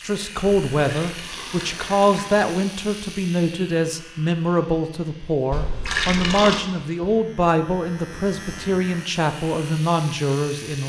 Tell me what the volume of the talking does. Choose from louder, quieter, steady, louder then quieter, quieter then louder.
steady.